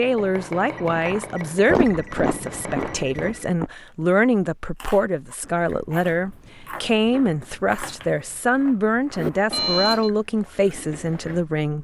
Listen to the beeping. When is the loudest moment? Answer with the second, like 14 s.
10 s.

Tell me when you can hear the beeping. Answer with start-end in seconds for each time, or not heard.
0.8-3.5, 9.5-10.1.